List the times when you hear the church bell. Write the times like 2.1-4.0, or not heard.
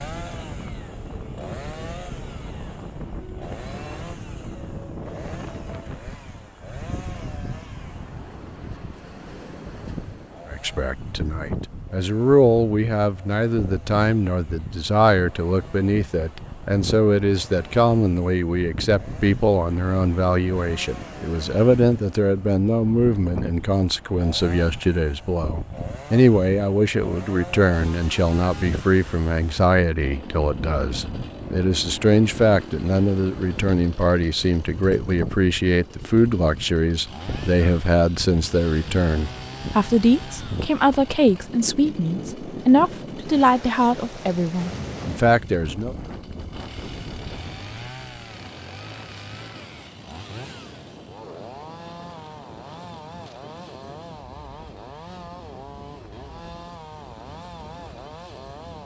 not heard.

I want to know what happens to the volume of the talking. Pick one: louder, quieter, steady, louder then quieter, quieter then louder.
steady.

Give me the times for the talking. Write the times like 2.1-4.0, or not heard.
10.4-46.0.